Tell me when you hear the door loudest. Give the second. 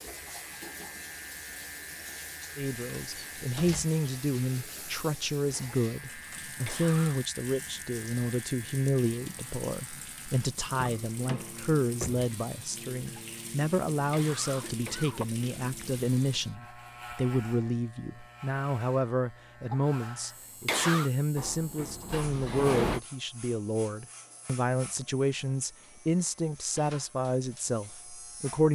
23 s.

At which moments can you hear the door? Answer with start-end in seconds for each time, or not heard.
3.0-3.9, 10.7-12.3, 21.4-23.0.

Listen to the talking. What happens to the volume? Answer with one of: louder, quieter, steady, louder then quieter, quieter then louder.
steady.